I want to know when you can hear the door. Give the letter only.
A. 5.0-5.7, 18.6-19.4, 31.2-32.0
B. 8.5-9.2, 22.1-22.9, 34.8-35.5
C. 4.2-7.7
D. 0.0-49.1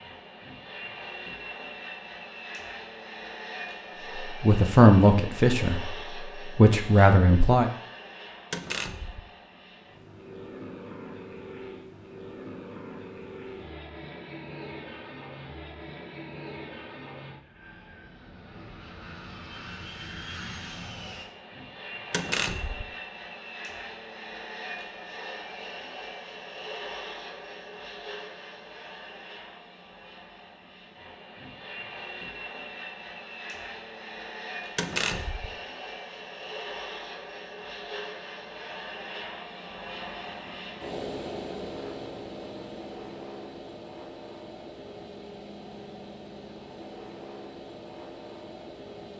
B.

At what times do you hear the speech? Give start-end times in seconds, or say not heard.
4.2-7.7.